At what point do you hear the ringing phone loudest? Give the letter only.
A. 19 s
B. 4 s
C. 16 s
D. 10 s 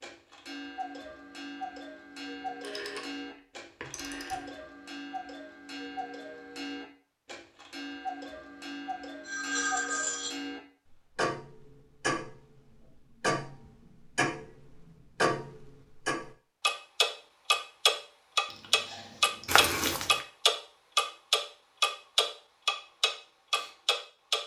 D.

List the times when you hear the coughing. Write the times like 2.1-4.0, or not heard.
not heard.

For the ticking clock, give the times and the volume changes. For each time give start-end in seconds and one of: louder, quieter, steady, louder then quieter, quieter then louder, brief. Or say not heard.
0.0-24.4 louder.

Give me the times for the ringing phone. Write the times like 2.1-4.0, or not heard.
2.6-3.1, 3.8-4.6, 9.2-10.3, 18.4-19.5.